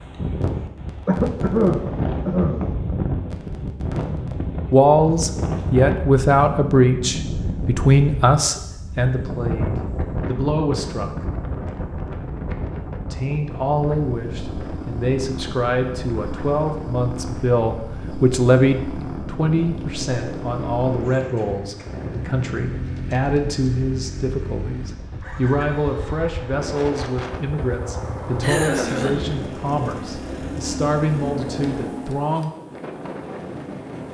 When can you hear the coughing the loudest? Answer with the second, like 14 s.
2 s.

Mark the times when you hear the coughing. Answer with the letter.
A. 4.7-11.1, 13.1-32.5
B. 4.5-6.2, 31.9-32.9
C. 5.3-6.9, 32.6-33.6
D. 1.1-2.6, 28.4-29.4
D.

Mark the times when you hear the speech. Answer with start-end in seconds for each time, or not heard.
4.7-11.1, 13.1-32.5.